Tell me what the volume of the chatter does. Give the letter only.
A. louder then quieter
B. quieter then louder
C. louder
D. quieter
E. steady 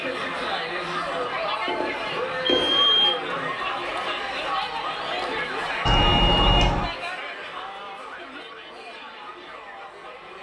D.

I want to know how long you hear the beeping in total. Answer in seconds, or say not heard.
3 s.